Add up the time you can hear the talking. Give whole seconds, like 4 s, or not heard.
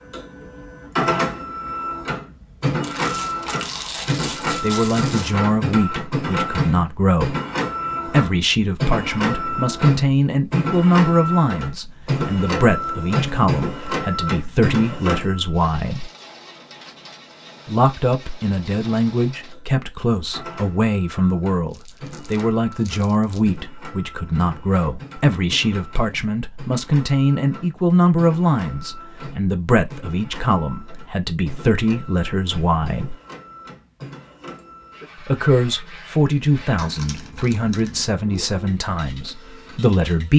31 s.